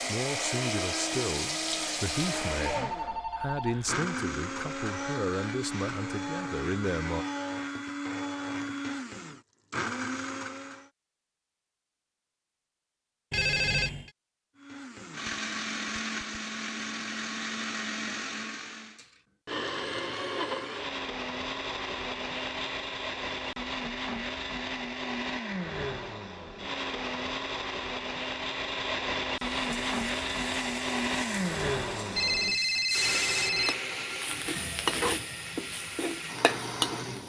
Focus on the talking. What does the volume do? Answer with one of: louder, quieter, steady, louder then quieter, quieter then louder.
steady.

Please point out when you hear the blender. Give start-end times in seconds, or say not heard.
0.0-10.9, 14.6-37.2.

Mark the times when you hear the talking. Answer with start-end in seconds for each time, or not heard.
0.1-7.2.